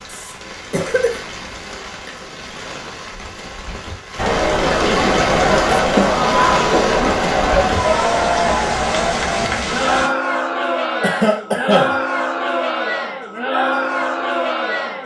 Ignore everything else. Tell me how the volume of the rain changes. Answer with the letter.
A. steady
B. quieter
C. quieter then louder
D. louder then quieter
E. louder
E.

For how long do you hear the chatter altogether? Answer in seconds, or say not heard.
11 s.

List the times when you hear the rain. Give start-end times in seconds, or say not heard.
0.0-10.1.